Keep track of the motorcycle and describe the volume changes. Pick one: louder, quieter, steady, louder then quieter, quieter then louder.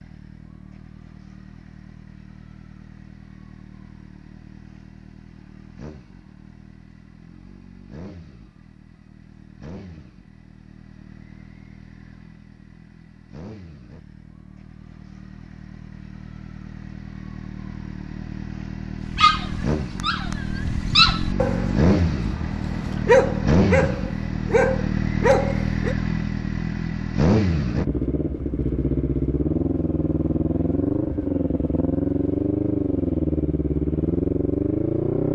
louder.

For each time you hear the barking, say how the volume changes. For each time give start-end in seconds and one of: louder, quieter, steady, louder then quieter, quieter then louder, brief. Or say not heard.
19.1-25.9 louder.